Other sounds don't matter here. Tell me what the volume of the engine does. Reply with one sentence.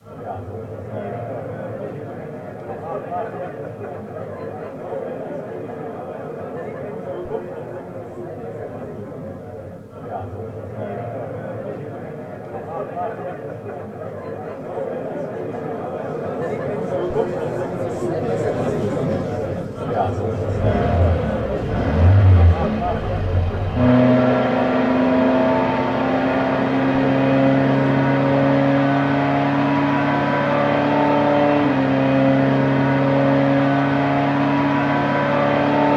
The loudness of the engine goes up.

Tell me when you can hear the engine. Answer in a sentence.
You can hear the engine from 20.4 to 35.9 s.